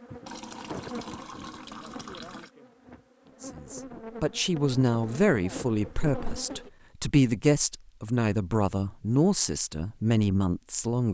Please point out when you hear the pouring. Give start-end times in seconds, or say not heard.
0.2-2.5.